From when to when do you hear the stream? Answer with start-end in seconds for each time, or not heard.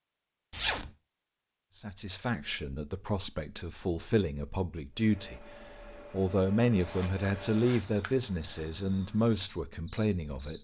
not heard.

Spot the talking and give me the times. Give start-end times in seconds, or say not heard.
1.8-10.5.